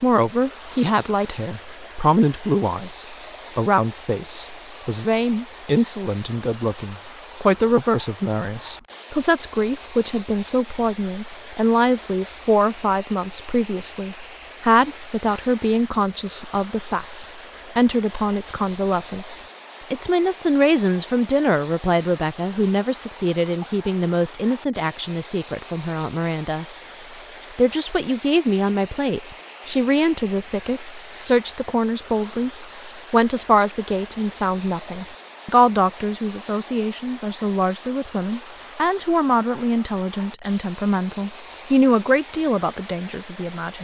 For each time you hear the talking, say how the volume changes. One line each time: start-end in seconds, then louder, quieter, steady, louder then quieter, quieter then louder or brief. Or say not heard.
0.0-26.6 steady
27.6-43.7 steady.